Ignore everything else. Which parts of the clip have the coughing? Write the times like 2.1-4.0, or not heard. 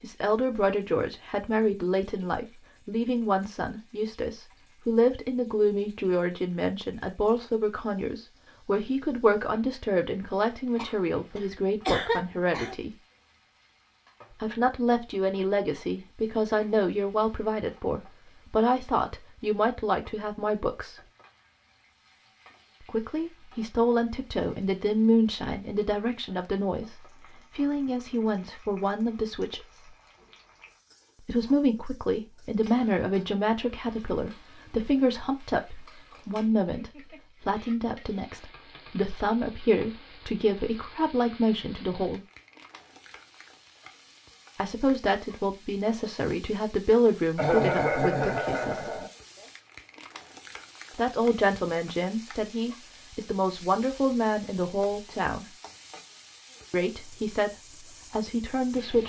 10.8-12.8, 47.4-49.1.